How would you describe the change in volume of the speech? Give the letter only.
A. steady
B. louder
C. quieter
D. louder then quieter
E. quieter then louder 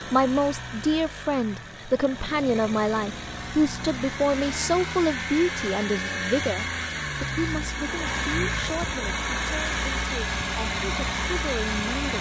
C.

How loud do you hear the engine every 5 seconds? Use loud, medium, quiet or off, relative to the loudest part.
medium, loud, loud.